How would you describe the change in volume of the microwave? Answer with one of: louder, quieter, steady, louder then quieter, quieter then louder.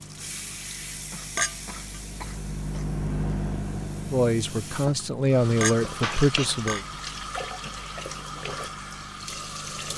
louder then quieter.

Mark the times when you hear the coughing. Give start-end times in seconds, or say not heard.
0.9-2.9, 6.0-6.5.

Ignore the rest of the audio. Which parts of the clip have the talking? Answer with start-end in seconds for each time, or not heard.
4.0-6.8.